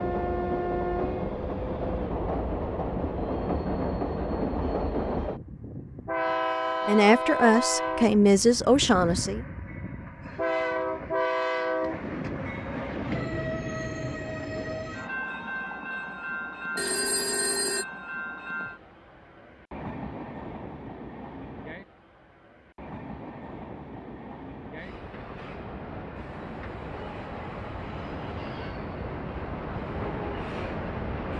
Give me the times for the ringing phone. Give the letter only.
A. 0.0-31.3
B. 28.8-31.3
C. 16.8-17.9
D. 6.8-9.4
C.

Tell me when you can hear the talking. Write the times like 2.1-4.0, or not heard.
6.8-9.4.